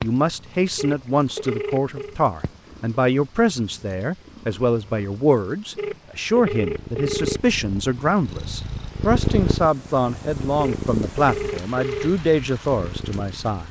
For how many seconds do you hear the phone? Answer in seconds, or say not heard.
5 s.